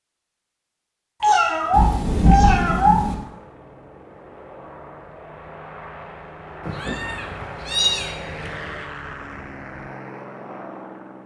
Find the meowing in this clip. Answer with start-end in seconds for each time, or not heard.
1.2-3.0, 6.7-8.5.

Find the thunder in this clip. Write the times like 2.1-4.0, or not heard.
1.7-3.1.